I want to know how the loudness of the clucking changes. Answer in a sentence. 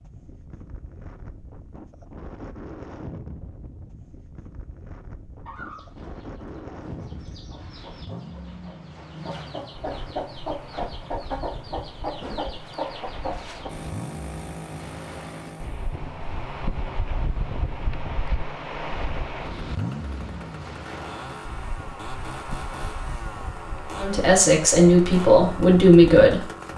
The loudness of the clucking goes up.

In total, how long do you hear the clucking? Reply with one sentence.
The clucking can be heard for 8 seconds in total.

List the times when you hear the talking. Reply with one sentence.
The talking can be heard from 23.9 to 26.5 s.